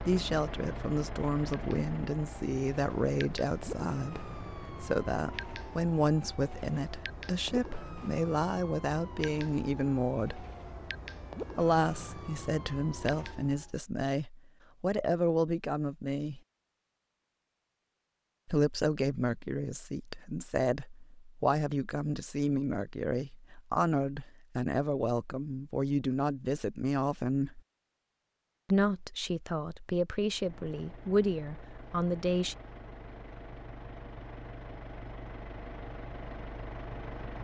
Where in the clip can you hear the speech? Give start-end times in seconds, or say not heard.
0.0-10.4, 11.6-16.4, 18.4-27.6, 28.6-32.5.